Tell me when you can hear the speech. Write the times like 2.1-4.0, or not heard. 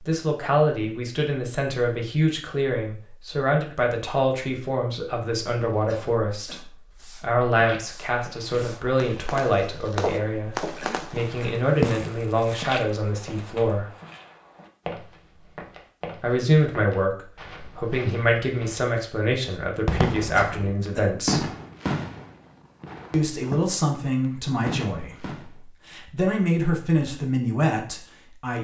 0.0-13.9, 16.2-21.5, 23.1-28.6.